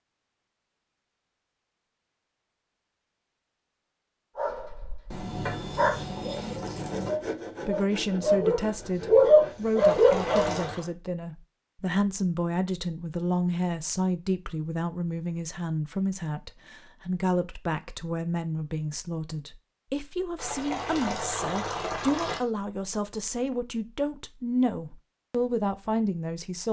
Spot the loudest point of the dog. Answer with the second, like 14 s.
9 s.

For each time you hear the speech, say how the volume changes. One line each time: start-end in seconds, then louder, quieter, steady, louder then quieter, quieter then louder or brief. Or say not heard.
7.7-26.6 steady.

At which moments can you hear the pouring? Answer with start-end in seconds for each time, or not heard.
5.1-7.1, 9.8-10.8, 20.4-22.4.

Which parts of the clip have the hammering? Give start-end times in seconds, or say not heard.
not heard.